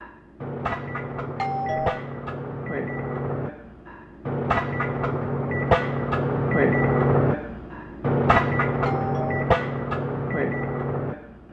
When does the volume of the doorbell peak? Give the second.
2 s.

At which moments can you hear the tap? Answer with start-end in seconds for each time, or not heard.
not heard.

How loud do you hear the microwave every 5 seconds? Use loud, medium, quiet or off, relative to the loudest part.
medium, loud, medium.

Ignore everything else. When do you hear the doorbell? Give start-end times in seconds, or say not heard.
1.4-2.0, 8.8-9.5.